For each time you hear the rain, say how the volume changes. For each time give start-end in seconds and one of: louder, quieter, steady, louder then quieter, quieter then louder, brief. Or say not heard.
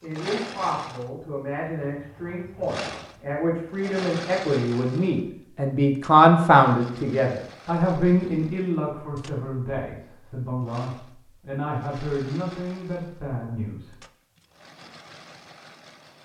not heard.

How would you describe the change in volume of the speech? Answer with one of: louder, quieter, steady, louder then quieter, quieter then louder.
louder then quieter.